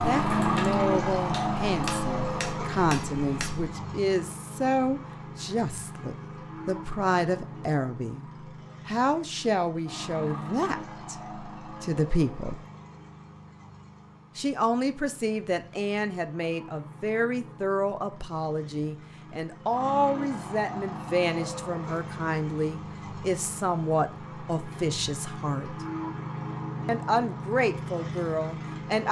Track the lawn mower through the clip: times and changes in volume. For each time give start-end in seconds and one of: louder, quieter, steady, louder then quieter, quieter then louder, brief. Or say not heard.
0.0-29.0 quieter then louder.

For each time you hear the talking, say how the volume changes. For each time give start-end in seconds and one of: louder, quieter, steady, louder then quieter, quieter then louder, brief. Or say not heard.
0.0-12.7 steady
14.3-25.8 steady
26.9-29.0 brief.